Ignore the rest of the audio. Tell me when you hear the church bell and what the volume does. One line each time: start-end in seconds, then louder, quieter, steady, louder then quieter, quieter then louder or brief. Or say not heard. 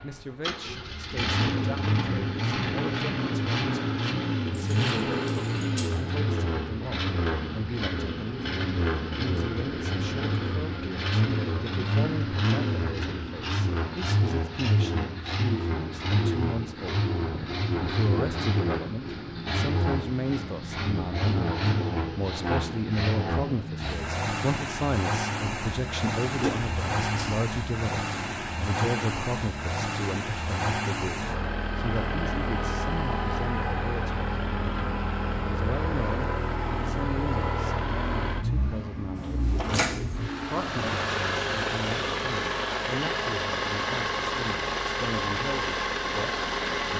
not heard.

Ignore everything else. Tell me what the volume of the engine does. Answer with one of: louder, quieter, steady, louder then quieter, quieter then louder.
steady.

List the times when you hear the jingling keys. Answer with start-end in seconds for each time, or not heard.
4.5-6.0, 26.4-27.3, 39.1-39.9.